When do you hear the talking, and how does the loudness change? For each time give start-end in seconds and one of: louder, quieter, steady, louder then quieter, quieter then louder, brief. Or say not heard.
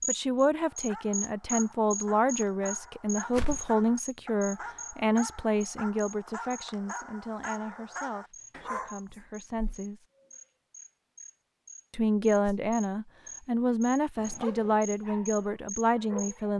0.1-10.1 quieter
11.9-16.5 steady.